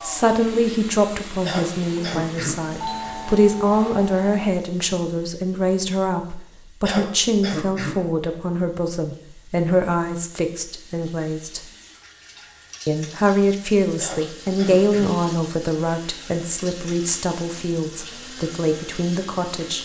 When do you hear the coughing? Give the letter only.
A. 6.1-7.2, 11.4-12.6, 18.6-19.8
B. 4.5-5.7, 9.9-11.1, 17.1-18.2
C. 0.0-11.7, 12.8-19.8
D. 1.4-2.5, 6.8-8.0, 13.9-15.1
D.